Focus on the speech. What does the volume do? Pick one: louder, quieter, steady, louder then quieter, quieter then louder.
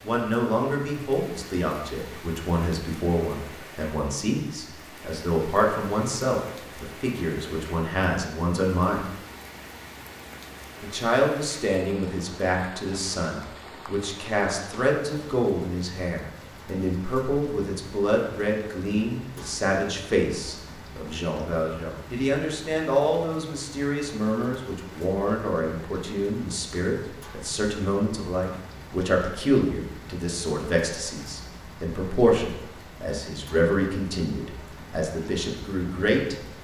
steady.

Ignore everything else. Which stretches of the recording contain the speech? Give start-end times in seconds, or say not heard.
0.0-9.1, 10.8-36.4.